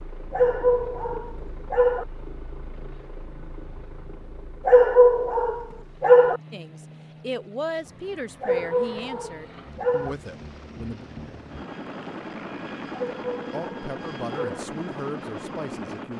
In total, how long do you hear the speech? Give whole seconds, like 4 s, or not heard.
7 s.